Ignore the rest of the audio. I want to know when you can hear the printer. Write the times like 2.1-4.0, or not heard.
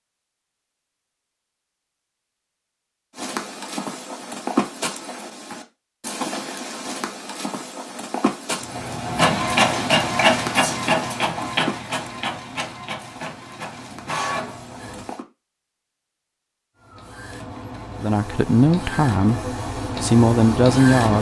8.6-15.1, 16.8-21.1.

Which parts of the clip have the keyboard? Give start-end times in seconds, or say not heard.
not heard.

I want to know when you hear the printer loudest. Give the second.
10 s.